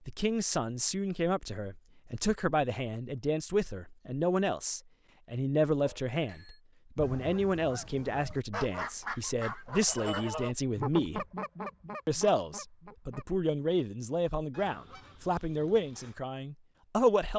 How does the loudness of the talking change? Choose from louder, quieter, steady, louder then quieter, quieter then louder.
steady.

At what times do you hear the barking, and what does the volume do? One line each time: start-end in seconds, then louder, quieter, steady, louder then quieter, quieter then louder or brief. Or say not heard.
not heard.